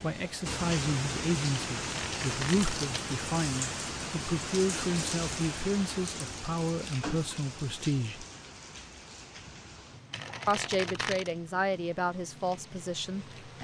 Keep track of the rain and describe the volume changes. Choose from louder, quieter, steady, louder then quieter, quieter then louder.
quieter.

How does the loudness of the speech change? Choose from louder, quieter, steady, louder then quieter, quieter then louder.
steady.